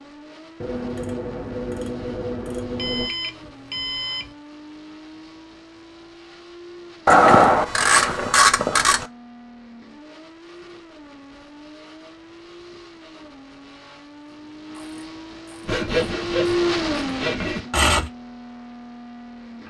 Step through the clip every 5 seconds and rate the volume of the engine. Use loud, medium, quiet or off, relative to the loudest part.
quiet, quiet, quiet, loud.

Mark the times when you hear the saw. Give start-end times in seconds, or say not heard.
15.7-18.1.